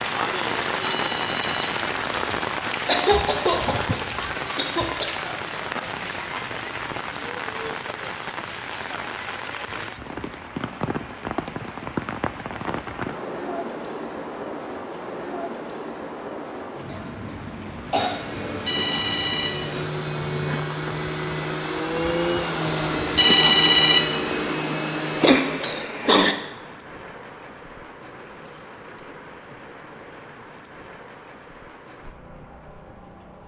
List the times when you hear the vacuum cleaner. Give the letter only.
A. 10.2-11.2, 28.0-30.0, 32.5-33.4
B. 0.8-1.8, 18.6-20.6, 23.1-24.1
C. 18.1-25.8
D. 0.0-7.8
C.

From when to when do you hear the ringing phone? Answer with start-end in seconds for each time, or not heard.
0.8-1.8, 18.6-20.6, 23.1-24.1.